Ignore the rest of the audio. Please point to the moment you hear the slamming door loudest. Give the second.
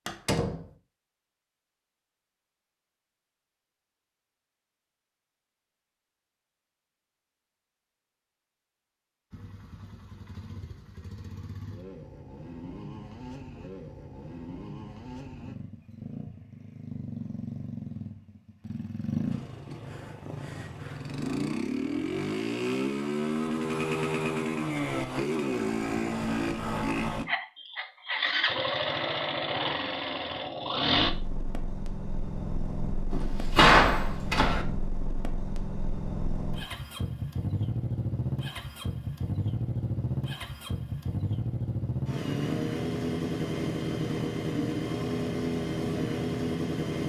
34 s.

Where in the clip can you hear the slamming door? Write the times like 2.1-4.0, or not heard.
0.1-0.7, 33.1-34.6.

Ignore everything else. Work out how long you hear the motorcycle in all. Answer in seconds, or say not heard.
38 s.